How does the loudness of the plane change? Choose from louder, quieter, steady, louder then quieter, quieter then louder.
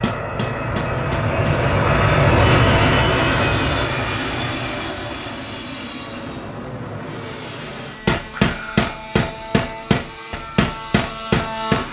quieter.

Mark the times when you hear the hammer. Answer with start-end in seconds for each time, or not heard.
0.0-1.6, 8.1-11.8.